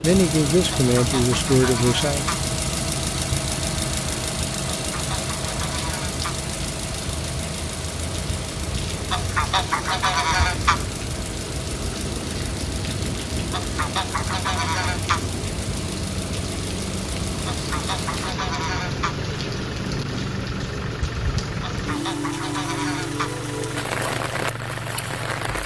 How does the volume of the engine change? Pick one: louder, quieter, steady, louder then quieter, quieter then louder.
quieter.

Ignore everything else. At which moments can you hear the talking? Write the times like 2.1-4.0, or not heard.
0.0-2.2.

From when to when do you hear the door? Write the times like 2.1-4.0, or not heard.
not heard.